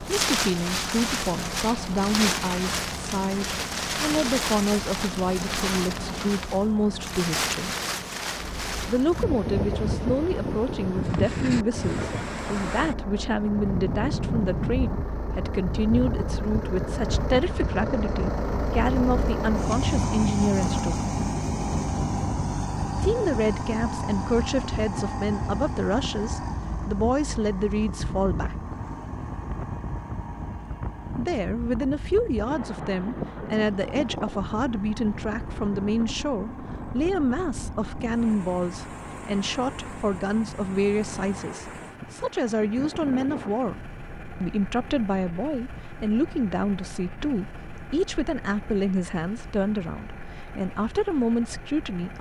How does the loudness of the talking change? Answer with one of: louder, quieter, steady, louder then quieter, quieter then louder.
steady.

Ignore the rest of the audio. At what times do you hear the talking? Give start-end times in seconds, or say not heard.
0.2-7.8, 8.8-21.1, 23.0-28.6, 31.1-43.8, 44.4-52.1.